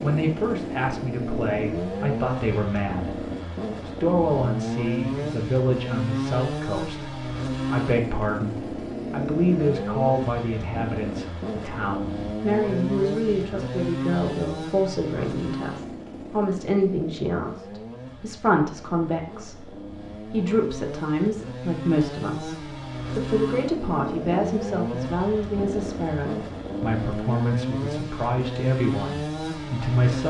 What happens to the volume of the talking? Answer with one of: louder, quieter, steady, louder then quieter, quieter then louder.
steady.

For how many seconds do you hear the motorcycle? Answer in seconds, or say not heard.
30 s.